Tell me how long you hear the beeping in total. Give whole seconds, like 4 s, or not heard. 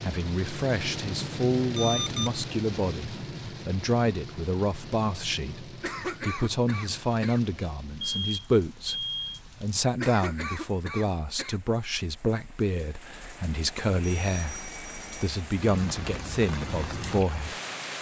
3 s.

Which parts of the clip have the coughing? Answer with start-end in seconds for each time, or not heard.
5.8-7.4, 9.9-11.6.